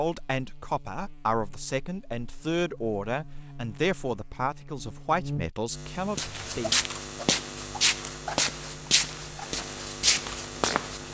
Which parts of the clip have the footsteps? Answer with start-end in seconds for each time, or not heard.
6.0-11.0.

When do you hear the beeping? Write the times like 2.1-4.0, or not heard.
not heard.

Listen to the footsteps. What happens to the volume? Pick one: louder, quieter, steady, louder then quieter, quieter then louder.
steady.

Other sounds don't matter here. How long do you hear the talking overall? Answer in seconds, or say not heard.
7 s.